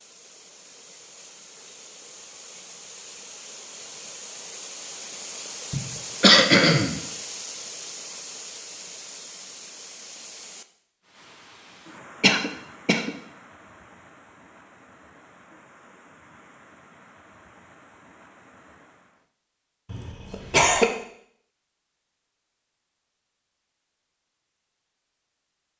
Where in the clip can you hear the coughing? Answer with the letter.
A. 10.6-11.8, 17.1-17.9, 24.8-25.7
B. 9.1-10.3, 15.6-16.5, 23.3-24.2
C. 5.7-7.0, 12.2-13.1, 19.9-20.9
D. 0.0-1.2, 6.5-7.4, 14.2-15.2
C.